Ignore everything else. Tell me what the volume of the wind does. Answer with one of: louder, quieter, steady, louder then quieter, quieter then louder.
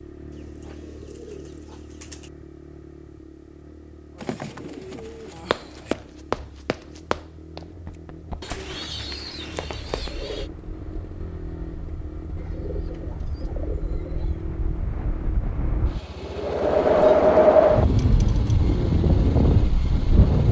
louder then quieter.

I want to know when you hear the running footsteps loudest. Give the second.
6 s.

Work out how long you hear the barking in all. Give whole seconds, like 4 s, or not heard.
not heard.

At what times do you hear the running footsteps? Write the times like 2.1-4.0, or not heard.
5.5-10.1.